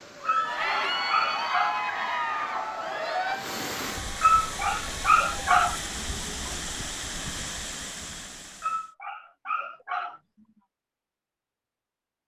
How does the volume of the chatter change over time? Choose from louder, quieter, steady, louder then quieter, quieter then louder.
quieter.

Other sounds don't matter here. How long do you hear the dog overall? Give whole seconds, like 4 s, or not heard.
5 s.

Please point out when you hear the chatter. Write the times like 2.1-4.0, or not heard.
0.1-6.7.